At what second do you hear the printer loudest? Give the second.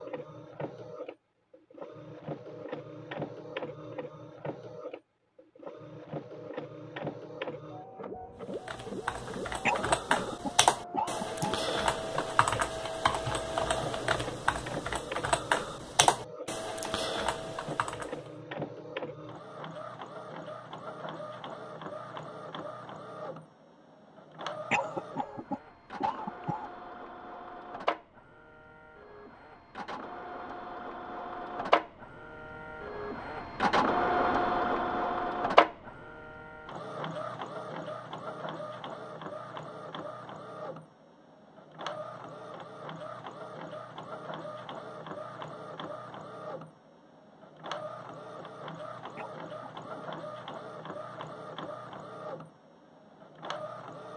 35 s.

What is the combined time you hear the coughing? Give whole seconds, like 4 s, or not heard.
5 s.